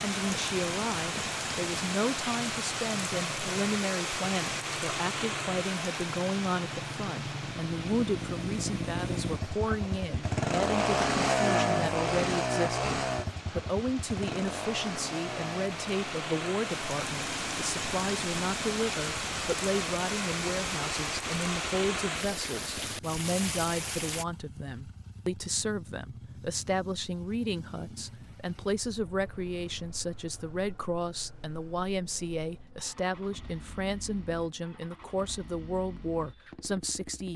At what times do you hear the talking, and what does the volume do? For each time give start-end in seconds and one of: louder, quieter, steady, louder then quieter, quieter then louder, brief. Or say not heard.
0.0-37.3 steady.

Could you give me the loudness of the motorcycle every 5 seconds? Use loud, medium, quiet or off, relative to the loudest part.
quiet, medium, loud, quiet, quiet, quiet, quiet, quiet.